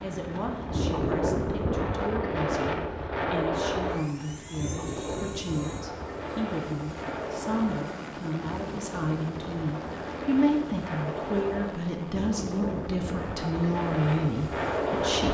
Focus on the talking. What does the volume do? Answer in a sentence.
The loudness of the talking goes up.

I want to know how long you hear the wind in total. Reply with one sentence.
The wind can be heard for 15 seconds in total.